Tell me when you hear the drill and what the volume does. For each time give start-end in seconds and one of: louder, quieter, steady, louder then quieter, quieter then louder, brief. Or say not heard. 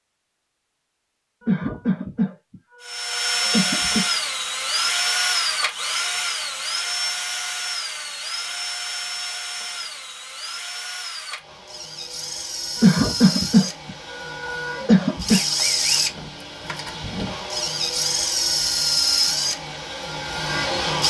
2.8-21.0 quieter then louder.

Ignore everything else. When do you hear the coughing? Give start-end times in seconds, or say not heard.
1.4-4.0, 12.8-15.4.